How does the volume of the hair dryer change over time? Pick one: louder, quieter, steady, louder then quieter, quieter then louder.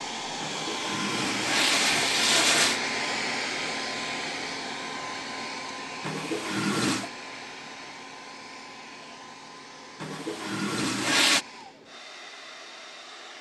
quieter.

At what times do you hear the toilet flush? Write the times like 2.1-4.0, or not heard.
0.4-2.8, 6.0-7.1, 10.0-11.4.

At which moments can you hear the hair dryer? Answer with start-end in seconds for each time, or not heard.
0.0-13.3.